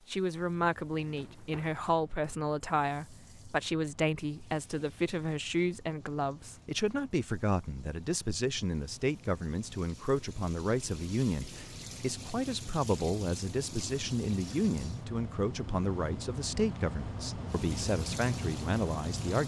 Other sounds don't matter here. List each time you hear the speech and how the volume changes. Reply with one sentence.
The speech can be heard from 0.1 to 19.4 s, at a steady volume.